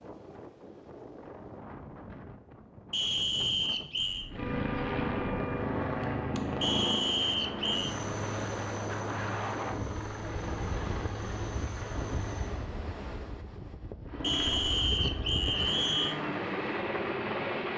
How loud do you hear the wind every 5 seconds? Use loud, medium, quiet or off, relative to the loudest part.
medium, loud, loud, loud.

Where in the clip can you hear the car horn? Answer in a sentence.
You can hear the car horn from 4.0 to 5.8 s.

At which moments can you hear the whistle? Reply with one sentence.
The whistle can be heard from 2.9 to 4.3 s, from 6.6 to 8.0 s and from 14.2 to 16.1 s.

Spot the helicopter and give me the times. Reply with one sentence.
The helicopter can be heard from 4.3 to 12.6 s and from 14.1 to 17.7 s.